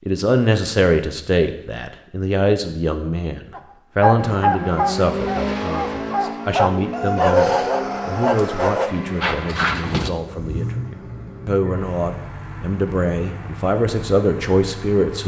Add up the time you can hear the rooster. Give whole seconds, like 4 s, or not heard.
2 s.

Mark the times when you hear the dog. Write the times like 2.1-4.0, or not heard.
3.5-10.1.